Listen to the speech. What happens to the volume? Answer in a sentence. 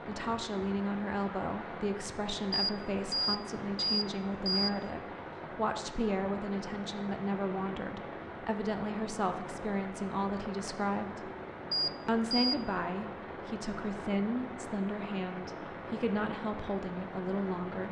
The loudness of the speech stays about the same.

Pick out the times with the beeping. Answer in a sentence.
You can hear the beeping from 2.5 to 4.8 s and from 11.7 to 12.6 s.